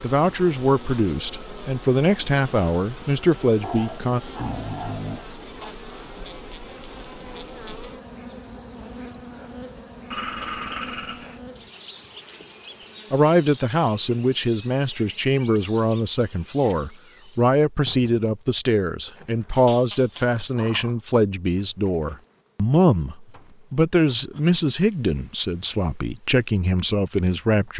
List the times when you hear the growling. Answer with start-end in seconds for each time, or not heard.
3.6-5.8, 10.1-11.4, 19.6-21.0.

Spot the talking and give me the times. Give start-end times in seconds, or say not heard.
0.0-4.2, 13.1-27.7.